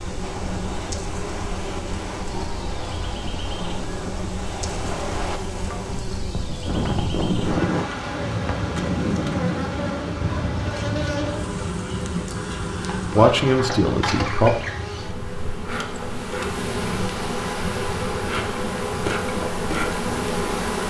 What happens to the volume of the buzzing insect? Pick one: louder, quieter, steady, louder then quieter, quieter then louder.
louder.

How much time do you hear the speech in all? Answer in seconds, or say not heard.
2 s.